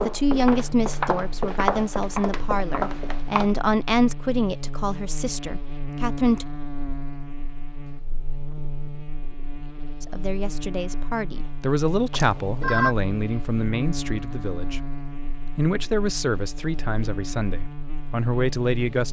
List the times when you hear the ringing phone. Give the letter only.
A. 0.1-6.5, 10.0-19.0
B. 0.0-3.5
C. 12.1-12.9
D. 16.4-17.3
C.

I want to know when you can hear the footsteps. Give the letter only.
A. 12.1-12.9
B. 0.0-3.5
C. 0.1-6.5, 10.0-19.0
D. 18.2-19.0
B.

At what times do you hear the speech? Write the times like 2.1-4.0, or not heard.
0.1-6.5, 10.0-19.0.